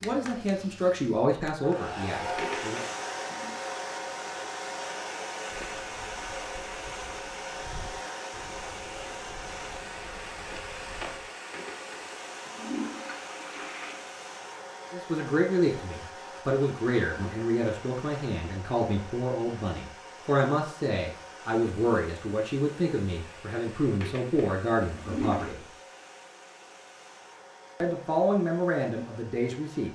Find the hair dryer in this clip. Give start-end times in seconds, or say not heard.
0.0-29.9.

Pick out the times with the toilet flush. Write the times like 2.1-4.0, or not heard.
2.4-3.6, 11.5-14.2, 24.0-25.6.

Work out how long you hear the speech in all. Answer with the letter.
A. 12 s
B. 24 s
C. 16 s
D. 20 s
C.